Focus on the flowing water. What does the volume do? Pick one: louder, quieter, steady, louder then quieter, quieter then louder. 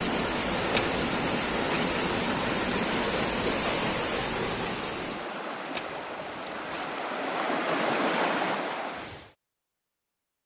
quieter then louder.